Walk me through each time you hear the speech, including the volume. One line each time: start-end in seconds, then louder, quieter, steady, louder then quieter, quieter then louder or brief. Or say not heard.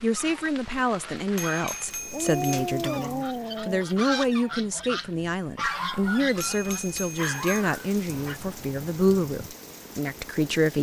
0.0-10.7 steady.